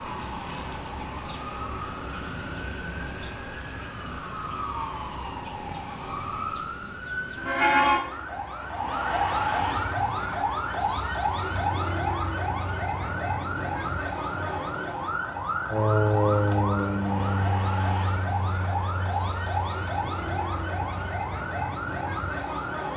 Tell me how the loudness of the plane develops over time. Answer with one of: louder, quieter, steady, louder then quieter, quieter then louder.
louder then quieter.